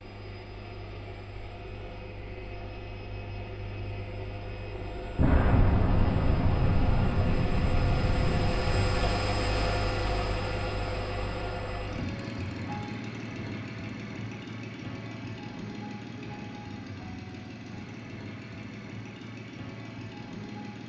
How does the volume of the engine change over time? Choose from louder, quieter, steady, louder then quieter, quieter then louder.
louder then quieter.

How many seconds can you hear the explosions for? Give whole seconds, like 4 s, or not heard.
4 s.